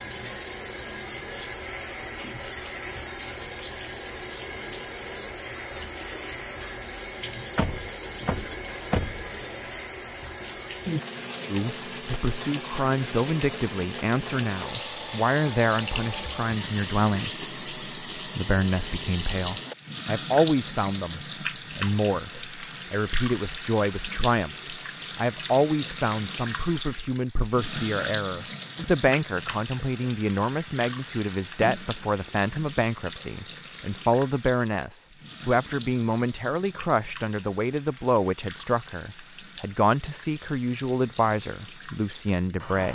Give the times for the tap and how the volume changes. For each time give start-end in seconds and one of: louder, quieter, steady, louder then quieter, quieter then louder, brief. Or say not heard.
0.0-42.9 quieter.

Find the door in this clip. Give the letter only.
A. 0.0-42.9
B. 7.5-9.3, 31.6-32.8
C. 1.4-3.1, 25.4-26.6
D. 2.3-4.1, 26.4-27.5
B.